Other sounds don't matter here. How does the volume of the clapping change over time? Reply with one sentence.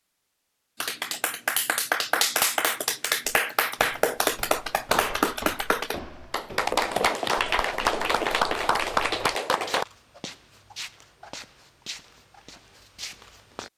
The loudness of the clapping stays about the same.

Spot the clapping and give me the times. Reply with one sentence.
The clapping can be heard from 0.8 to 9.8 s.